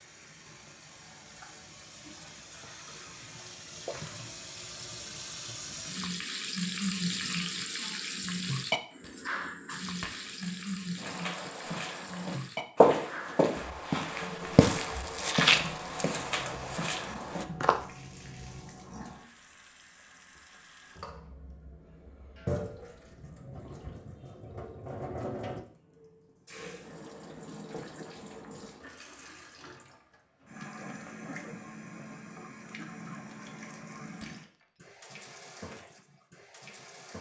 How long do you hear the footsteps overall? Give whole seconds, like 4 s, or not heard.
7 s.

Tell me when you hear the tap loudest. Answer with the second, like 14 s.
7 s.